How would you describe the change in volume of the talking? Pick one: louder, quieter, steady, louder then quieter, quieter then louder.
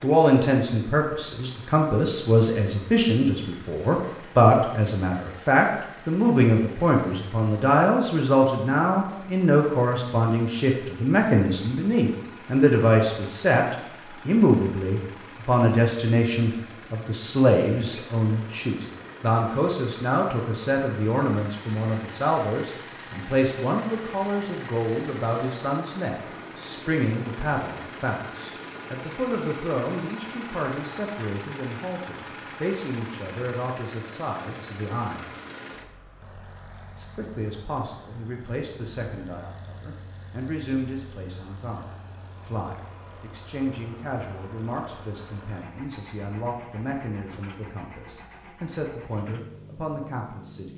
quieter.